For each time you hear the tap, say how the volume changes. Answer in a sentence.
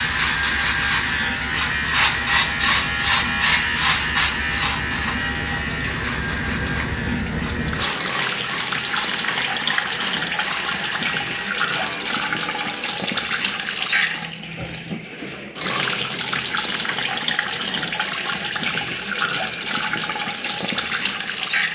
You can hear the tap from 0.0 to 21.7 s, getting louder.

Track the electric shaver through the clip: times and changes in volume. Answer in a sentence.
You can hear the electric shaver from 0.0 to 13.0 s, getting quieter.